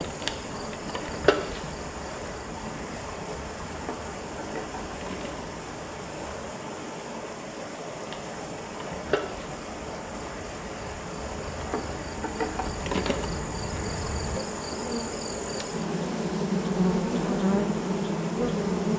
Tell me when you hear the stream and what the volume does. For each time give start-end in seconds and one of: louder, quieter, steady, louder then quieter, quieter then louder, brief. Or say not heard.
0.0-18.9 steady.